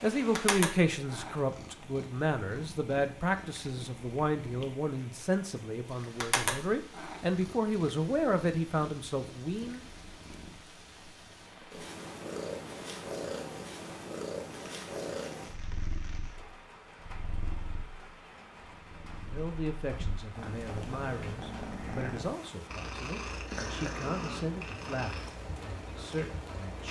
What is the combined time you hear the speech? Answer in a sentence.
You can hear the speech for 17 seconds altogether.